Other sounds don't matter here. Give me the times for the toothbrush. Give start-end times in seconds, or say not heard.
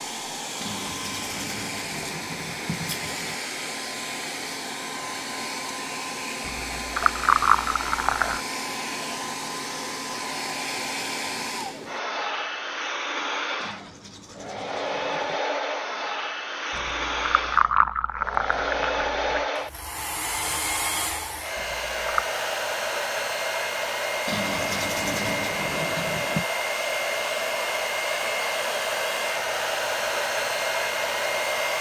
0.6-3.4, 13.6-15.4, 24.2-26.4.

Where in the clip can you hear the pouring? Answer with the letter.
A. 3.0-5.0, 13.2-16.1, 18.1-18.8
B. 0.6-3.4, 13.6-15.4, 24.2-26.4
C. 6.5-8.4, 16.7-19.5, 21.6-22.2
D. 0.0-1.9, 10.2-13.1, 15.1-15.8
C.